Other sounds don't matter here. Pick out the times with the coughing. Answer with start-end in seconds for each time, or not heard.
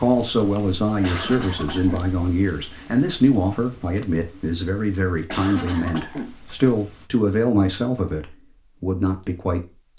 1.0-2.1, 5.2-6.3.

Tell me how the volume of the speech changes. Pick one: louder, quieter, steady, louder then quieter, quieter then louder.
steady.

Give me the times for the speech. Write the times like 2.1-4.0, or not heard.
0.0-9.6.